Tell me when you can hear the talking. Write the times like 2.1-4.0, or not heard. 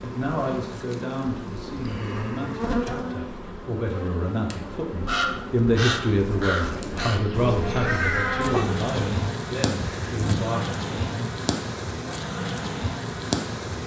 0.0-11.3.